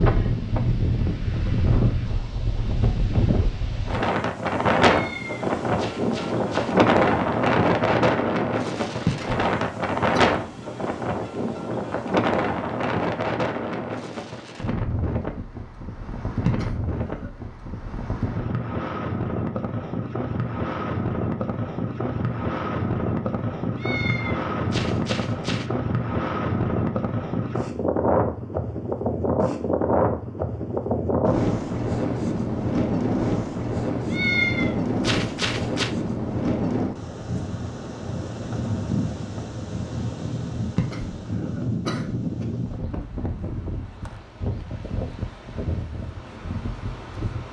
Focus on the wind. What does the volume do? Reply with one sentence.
The volume of the wind goes down.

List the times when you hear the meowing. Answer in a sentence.
You can hear the meowing from 4.8 to 6.8 s, from 23.8 to 25.6 s and from 34.1 to 35.9 s.